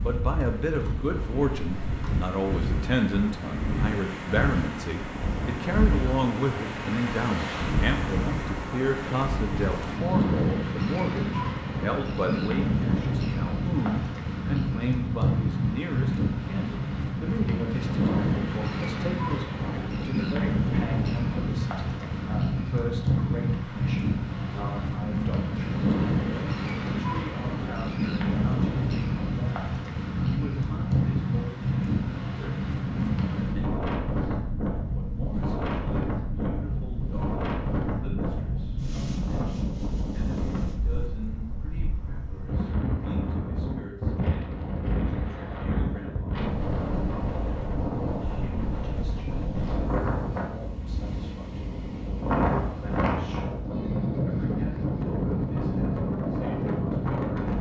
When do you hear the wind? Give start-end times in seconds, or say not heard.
0.0-57.5.